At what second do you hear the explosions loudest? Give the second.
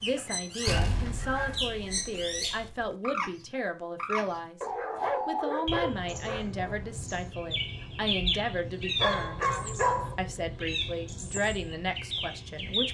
1 s.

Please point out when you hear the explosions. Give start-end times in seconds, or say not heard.
0.7-2.9.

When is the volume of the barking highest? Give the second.
10 s.